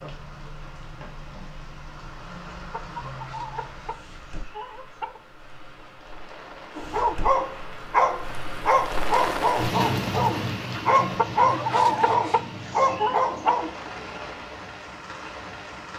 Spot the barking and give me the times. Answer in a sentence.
You can hear the barking from 6.8 to 13.7 s.